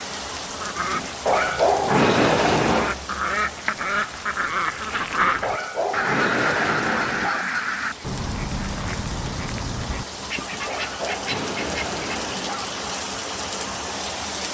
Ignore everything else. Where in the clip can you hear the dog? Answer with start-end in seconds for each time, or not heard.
1.2-3.0, 5.4-7.5, 10.7-12.7.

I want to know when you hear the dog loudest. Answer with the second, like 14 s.
2 s.